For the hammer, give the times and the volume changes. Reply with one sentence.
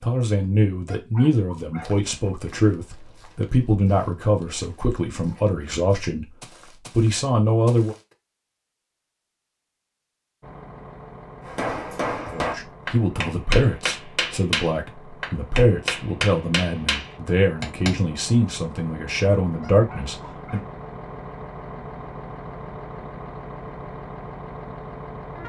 You can hear the hammer from 11.4 to 17.9 s, at a steady volume.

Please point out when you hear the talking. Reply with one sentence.
You can hear the talking from 0.0 to 6.3 s, from 6.9 to 8.0 s and from 12.3 to 20.6 s.